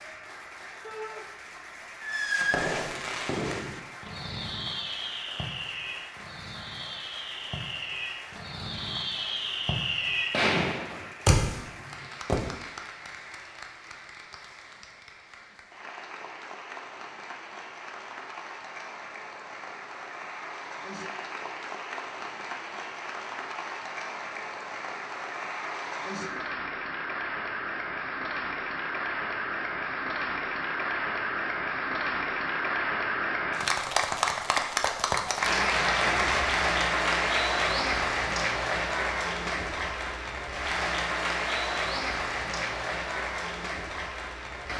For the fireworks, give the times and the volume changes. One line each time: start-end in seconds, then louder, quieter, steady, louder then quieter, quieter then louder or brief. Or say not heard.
2.0-12.6 quieter then louder.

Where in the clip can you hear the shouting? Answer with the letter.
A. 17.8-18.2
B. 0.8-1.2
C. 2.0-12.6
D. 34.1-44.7
B.